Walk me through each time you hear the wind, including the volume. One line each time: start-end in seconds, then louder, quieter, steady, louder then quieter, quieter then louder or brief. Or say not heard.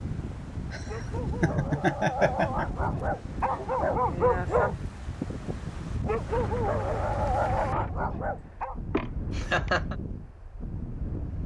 0.0-11.4 steady.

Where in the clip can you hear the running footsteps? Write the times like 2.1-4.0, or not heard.
not heard.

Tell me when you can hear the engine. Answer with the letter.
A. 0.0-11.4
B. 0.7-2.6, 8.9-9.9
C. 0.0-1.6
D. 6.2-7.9
D.